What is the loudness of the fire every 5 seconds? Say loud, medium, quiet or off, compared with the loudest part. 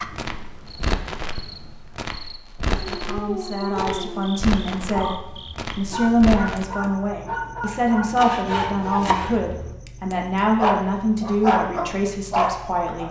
loud, loud, off.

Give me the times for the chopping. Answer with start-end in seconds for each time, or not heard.
8.2-9.3.